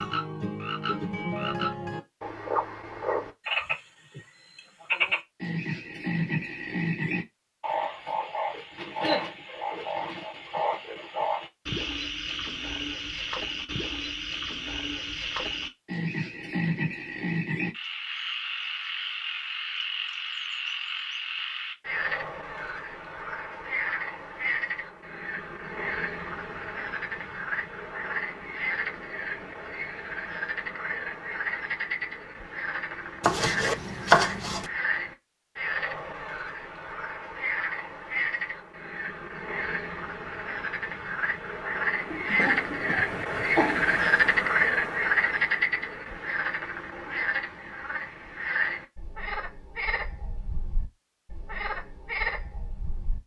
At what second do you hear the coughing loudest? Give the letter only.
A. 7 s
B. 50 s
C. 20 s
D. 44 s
D.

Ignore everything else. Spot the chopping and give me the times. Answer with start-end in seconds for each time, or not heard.
33.2-34.7.